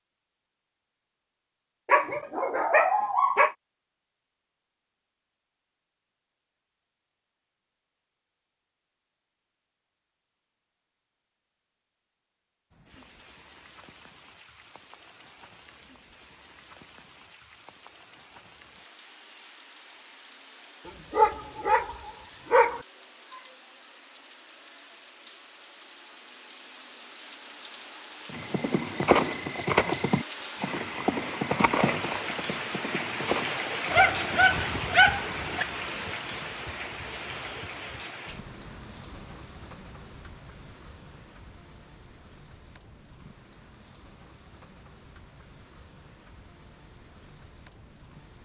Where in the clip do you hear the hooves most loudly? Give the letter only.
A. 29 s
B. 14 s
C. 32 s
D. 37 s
A.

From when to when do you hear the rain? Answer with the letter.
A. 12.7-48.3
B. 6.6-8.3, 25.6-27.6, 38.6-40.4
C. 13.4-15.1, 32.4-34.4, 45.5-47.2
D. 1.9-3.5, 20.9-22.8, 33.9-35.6
A.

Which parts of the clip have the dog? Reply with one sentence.
You can hear the dog from 1.9 to 3.5 s, from 20.9 to 22.8 s and from 33.9 to 35.6 s.